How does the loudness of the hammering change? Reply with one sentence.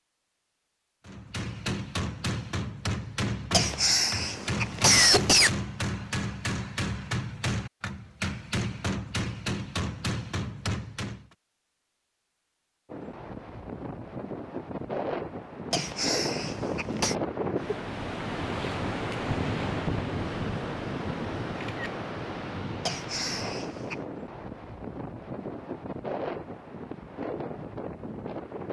The volume of the hammering stays about the same.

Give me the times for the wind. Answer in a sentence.
You can hear the wind from 12.8 to 28.6 s.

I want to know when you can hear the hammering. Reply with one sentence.
The hammering can be heard from 1.1 to 11.2 s.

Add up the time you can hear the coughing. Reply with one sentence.
You can hear the coughing for 5 seconds altogether.